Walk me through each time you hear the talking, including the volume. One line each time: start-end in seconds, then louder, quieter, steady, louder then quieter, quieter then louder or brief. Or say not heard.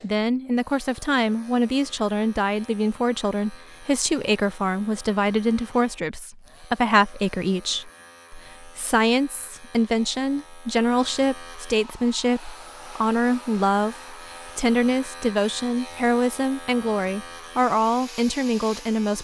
0.0-19.1 steady.